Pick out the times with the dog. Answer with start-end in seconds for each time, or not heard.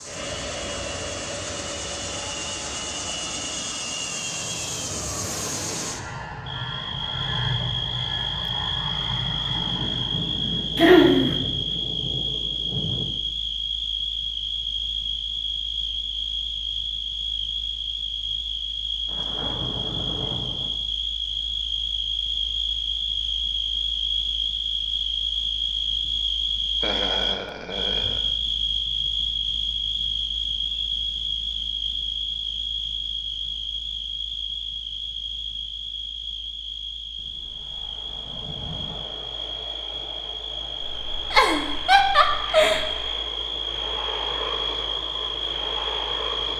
not heard.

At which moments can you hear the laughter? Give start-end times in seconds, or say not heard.
10.8-11.3, 26.8-28.2, 40.8-42.9.